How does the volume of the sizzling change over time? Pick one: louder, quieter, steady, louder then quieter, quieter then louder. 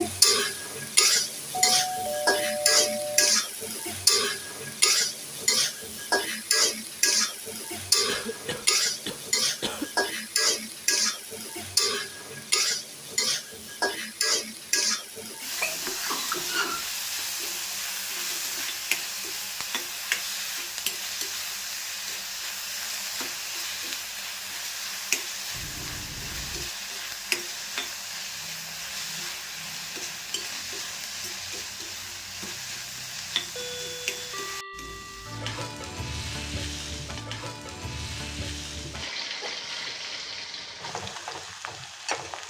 quieter.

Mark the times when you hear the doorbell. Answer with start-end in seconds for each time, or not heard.
1.5-3.4, 25.5-26.7, 33.5-35.5.